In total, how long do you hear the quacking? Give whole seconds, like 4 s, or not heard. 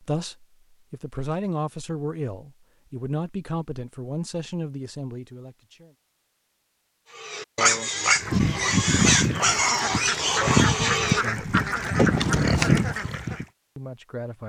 5 s.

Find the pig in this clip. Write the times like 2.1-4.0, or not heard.
7.1-13.2.